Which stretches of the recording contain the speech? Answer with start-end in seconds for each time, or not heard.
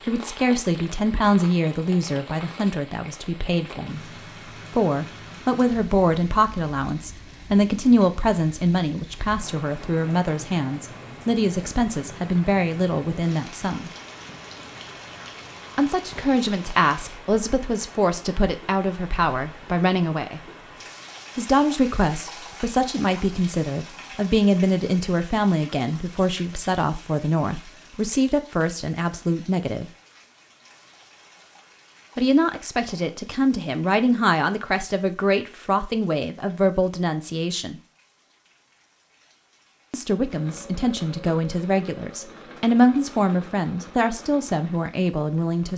0.1-13.9, 15.8-20.4, 21.4-29.9, 32.1-37.8, 39.9-45.7.